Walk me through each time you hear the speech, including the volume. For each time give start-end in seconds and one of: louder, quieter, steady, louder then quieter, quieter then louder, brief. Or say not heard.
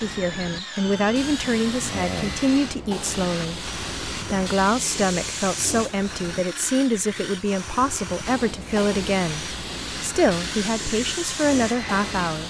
0.0-12.4 steady.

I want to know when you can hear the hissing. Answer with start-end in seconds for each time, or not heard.
0.0-6.5, 8.2-12.4.